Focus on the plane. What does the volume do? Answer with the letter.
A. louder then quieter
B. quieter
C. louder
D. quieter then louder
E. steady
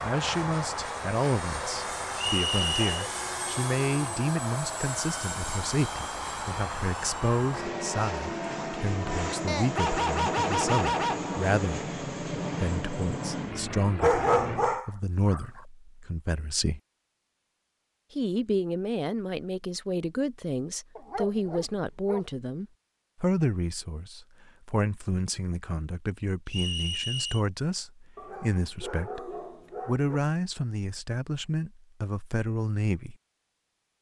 E.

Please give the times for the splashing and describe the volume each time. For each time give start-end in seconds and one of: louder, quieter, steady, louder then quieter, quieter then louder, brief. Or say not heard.
not heard.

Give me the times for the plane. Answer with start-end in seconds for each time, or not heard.
0.0-14.8.